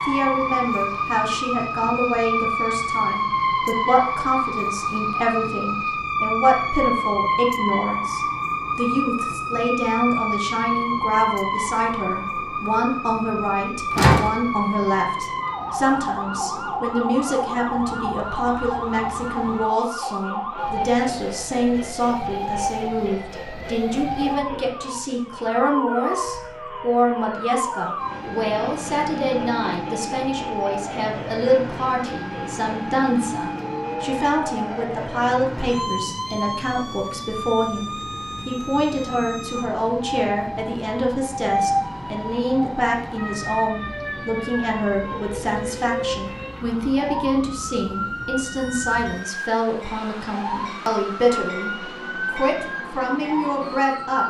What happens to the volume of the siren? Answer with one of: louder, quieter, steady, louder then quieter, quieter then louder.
quieter.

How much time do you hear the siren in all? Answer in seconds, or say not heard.
54 s.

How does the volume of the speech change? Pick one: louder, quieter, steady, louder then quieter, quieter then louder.
steady.